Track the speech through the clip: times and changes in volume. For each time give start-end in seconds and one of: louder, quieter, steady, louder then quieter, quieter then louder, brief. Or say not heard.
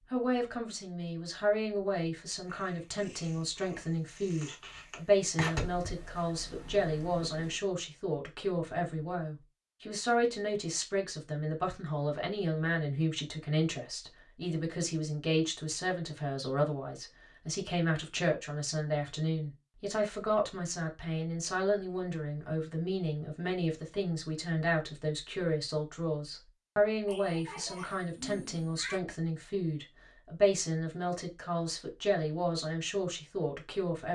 0.1-34.1 steady.